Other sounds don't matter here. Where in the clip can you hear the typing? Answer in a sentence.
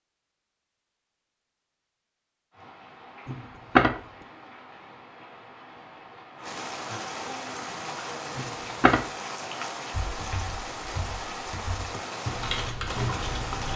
You can hear the typing from 9.9 to 13.7 s.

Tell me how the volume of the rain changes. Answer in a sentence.
The loudness of the rain goes up.